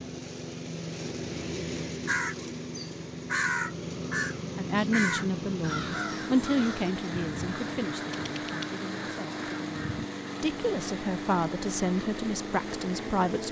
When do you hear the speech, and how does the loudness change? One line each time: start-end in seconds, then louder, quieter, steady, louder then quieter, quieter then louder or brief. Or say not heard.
4.5-13.4 quieter then louder.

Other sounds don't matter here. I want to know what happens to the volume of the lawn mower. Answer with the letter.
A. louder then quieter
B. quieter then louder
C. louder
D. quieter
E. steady
E.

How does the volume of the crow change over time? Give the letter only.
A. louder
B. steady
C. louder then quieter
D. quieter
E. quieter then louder
D.